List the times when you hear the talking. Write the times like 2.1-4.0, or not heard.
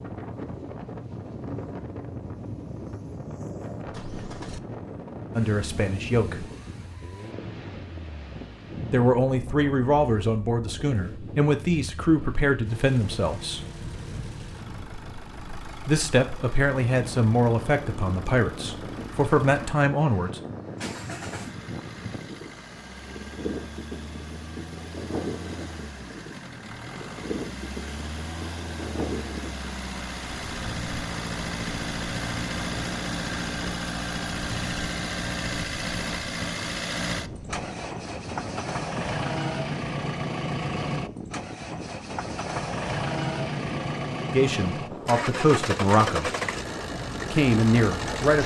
5.3-6.5, 8.9-13.7, 15.8-20.4, 44.3-46.3, 47.2-48.4.